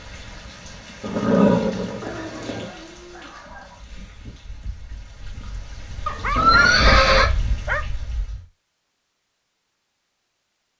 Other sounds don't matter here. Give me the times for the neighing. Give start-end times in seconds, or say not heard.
1.0-2.6, 6.3-7.3.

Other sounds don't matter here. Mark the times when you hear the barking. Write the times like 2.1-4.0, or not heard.
2.0-3.8, 6.0-7.8.